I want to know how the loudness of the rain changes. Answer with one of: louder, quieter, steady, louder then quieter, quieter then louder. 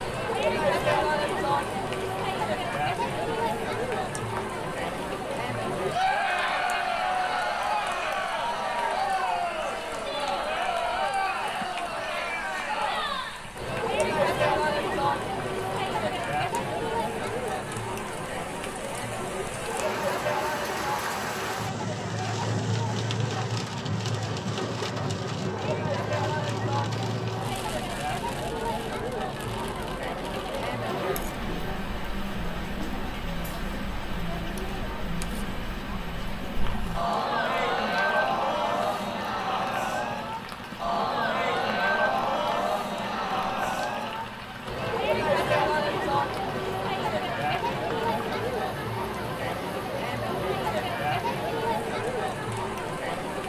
louder then quieter.